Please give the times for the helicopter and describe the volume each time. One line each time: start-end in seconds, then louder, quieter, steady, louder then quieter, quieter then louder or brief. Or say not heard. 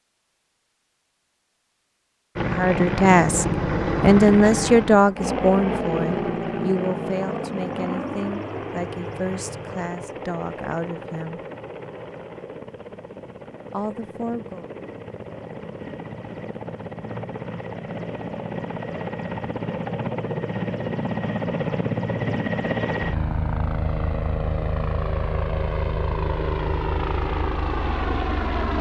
2.4-28.7 quieter then louder.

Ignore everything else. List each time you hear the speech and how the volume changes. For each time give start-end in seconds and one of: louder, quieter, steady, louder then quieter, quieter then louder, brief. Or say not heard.
2.5-11.4 quieter
13.7-14.7 brief.